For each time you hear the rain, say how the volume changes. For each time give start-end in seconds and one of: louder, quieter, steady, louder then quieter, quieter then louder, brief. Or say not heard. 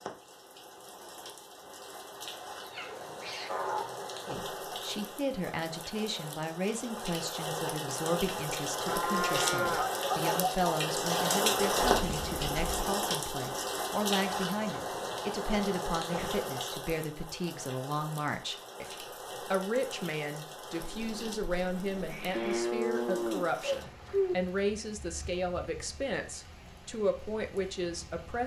0.0-28.4 louder then quieter.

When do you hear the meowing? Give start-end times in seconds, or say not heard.
2.6-3.9, 11.9-12.9, 20.8-22.7.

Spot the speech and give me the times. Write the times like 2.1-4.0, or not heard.
4.3-28.4.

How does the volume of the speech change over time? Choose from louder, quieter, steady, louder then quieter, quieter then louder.
steady.